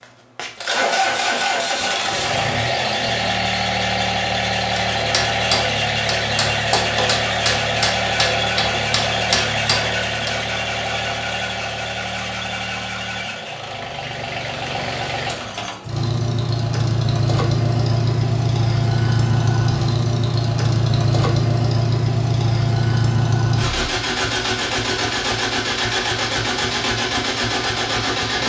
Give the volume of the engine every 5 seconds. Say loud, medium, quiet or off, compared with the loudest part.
loud, loud, medium, loud, loud, loud.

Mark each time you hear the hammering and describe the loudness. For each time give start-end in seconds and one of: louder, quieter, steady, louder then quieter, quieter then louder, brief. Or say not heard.
4.8-10.3 steady.